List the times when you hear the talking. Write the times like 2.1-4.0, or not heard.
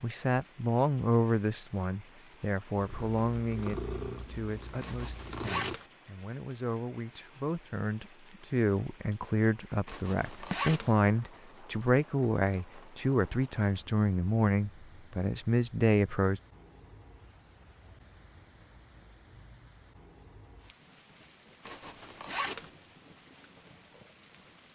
0.0-16.4.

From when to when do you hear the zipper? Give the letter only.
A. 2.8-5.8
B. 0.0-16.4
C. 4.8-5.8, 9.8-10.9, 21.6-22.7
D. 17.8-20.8
C.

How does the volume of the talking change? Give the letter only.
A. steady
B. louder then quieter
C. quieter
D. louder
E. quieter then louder
E.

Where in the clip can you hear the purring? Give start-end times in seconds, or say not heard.
2.8-5.8.